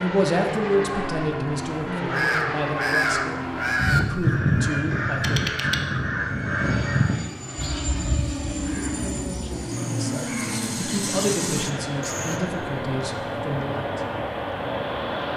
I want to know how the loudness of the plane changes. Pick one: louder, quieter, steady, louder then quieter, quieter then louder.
steady.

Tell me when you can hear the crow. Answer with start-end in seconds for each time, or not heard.
2.0-12.4.